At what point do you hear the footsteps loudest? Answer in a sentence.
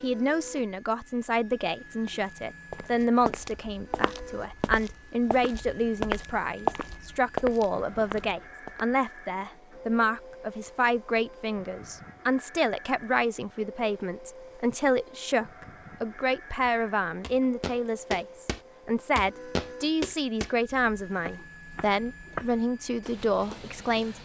The volume of the footsteps peaks at 7 seconds.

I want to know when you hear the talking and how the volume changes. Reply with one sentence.
You can hear the talking from 0.0 to 24.1 s, at a steady volume.